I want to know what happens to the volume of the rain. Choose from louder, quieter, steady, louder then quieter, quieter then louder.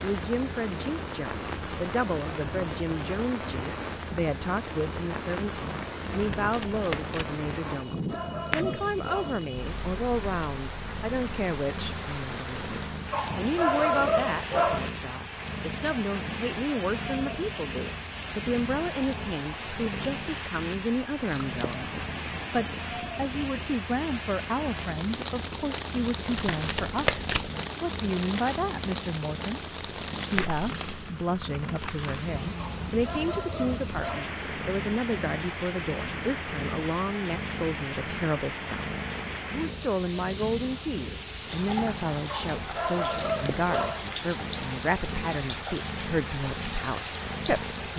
steady.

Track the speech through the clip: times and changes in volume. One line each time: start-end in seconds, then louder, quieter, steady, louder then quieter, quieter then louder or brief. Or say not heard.
0.0-47.9 steady.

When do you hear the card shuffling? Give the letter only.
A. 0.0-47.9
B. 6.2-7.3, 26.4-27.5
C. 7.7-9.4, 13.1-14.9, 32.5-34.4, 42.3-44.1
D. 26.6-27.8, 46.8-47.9
B.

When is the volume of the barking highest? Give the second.
14 s.